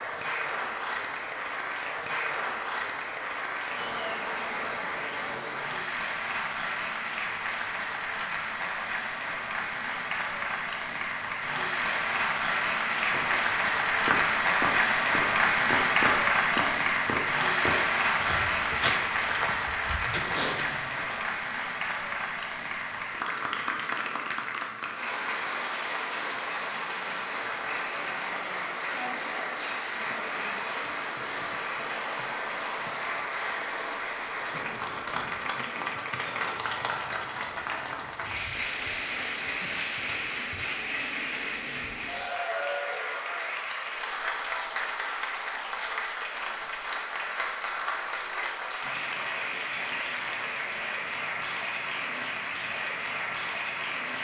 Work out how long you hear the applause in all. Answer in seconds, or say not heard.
54 s.